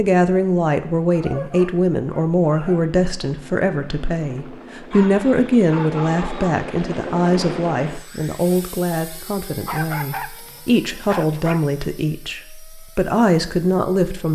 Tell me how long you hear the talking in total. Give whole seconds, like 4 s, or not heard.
14 s.